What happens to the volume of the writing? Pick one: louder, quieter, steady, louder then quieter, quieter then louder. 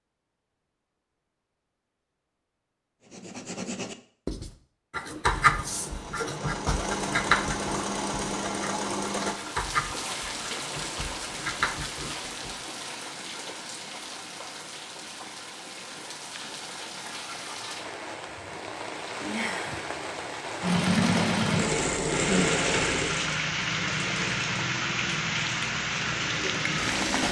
louder then quieter.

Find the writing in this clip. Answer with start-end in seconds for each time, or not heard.
3.1-12.6.